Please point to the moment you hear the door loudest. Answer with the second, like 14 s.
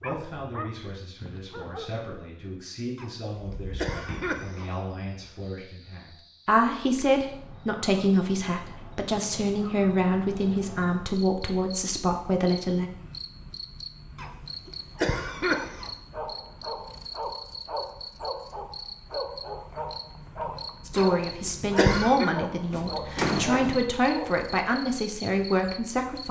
23 s.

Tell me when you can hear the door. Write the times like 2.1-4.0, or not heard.
3.4-4.5, 22.7-23.8.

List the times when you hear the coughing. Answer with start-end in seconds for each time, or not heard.
3.0-4.7, 14.2-15.9, 20.9-22.3.